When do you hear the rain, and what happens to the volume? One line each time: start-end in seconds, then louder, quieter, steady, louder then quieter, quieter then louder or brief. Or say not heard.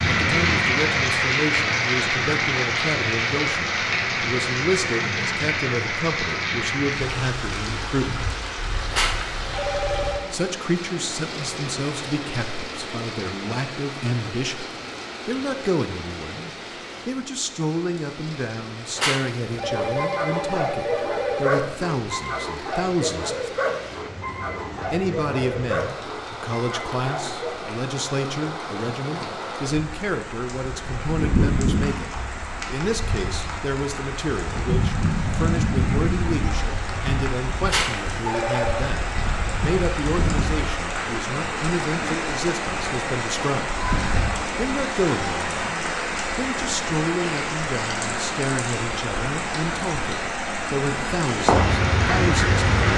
0.0-52.9 quieter then louder.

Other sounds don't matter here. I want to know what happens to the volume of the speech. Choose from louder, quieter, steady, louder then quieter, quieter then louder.
steady.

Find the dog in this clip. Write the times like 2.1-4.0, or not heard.
19.6-27.6.